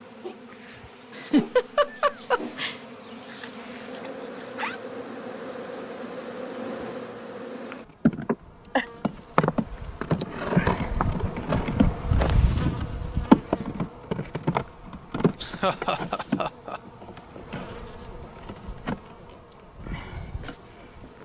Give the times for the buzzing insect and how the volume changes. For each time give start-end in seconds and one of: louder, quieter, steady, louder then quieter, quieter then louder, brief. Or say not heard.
0.0-21.1 louder then quieter.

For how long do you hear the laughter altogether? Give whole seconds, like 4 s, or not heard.
4 s.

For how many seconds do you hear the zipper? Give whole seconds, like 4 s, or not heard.
2 s.